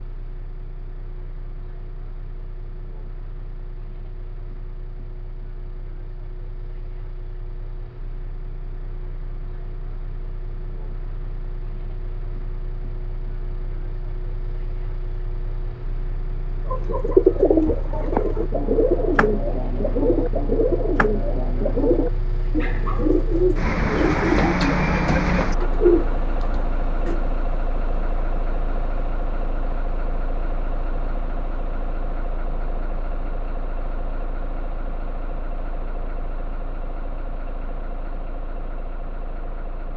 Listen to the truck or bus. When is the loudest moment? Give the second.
25 s.